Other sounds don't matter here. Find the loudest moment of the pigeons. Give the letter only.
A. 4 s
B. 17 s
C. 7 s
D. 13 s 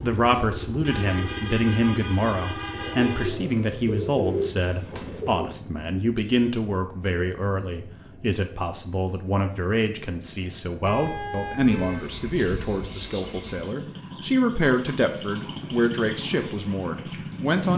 A.